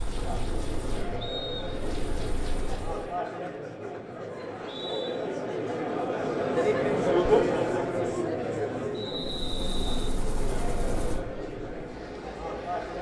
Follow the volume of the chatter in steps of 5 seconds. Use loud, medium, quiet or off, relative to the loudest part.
medium, loud, medium.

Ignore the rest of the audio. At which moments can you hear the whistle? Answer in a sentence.
The whistle can be heard from 1.2 to 1.7 s, from 4.4 to 5.2 s and from 8.9 to 10.2 s.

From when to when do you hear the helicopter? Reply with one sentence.
You can hear the helicopter from 0.0 to 3.1 s and from 9.1 to 12.9 s.